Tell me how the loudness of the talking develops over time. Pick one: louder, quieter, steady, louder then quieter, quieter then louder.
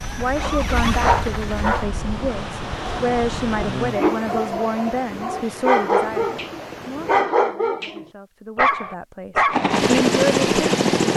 quieter.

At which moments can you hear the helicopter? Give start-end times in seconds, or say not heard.
0.0-1.9, 9.5-11.1.